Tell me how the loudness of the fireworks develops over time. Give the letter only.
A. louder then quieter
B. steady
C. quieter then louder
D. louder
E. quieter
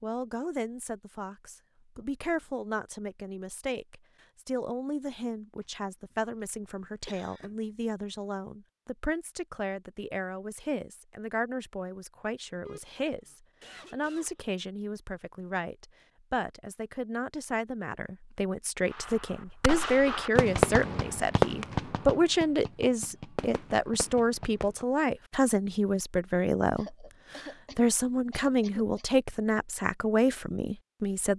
A.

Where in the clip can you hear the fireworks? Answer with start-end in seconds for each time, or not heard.
18.9-24.9.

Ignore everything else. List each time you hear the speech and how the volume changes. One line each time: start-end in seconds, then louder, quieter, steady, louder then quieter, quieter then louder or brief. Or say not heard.
0.0-31.3 louder.